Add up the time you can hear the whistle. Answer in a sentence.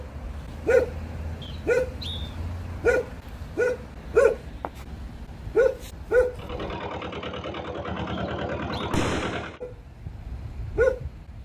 The whistle can be heard for 2 seconds in total.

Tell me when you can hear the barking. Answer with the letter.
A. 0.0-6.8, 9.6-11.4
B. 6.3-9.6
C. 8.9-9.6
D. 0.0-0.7
A.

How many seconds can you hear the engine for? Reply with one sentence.
The engine can be heard for 3 seconds in total.